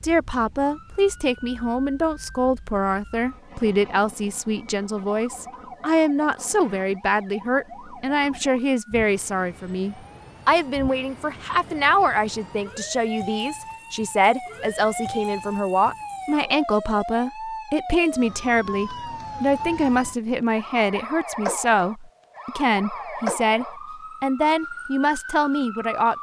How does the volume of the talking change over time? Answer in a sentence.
The volume of the talking stays about the same.